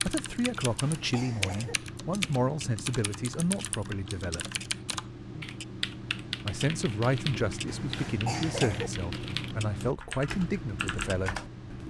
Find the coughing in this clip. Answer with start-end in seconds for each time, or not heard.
0.7-1.8, 7.7-8.9.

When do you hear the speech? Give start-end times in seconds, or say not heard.
0.0-4.5, 6.5-11.8.